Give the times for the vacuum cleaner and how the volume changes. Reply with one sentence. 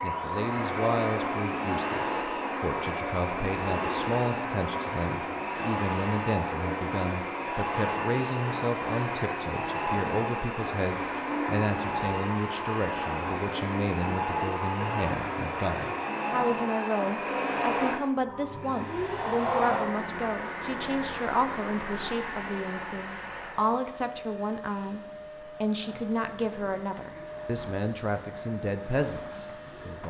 The vacuum cleaner can be heard from 0.0 to 30.0 s, getting quieter.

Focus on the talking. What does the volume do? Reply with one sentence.
The volume of the talking stays about the same.